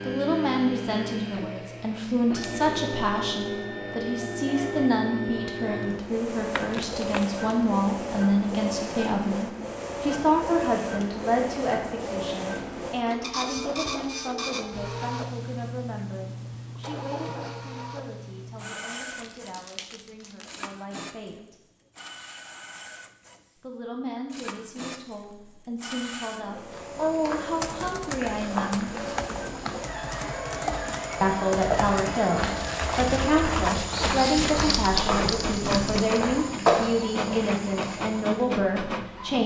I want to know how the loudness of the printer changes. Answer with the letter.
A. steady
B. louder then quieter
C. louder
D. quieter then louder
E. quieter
D.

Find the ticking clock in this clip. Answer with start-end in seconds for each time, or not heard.
not heard.